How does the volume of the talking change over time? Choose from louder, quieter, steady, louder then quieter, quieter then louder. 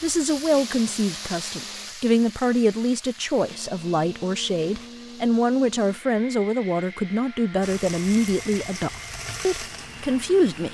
steady.